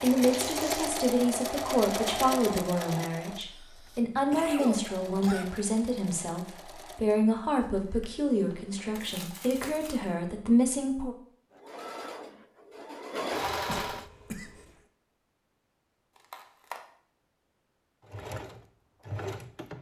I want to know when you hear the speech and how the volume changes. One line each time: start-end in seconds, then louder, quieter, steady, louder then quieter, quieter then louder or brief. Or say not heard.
0.0-11.2 steady.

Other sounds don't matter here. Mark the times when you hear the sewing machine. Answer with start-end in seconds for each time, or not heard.
0.0-9.2, 11.5-14.1, 18.0-19.7.